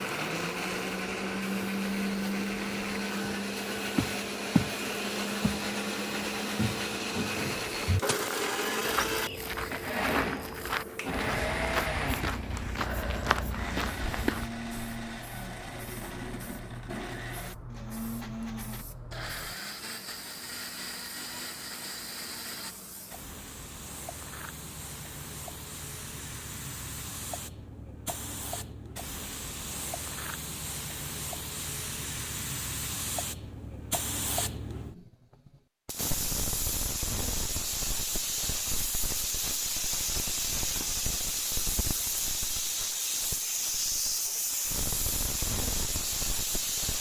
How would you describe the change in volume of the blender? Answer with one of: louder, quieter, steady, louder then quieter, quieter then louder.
quieter.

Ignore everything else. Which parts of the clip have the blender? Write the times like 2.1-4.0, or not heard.
0.0-22.8.